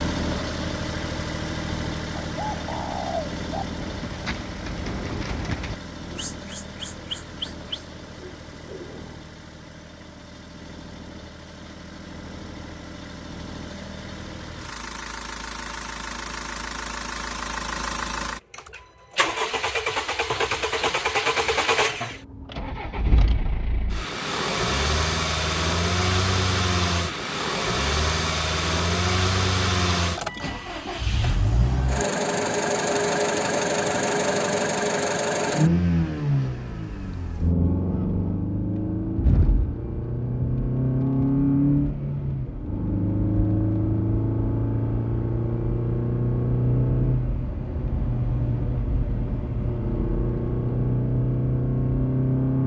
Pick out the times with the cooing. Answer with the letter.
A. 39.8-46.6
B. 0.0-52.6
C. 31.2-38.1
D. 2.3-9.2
D.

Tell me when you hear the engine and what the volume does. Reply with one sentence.
The engine can be heard from 0.0 to 52.6 s, getting louder.